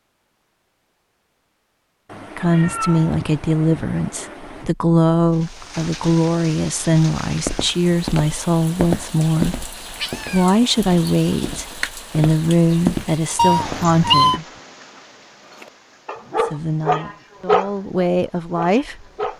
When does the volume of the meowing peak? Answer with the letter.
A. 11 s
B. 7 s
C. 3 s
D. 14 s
D.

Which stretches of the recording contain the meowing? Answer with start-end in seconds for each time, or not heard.
2.0-4.7, 10.0-10.6, 13.3-14.4.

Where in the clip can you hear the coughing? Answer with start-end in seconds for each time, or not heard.
not heard.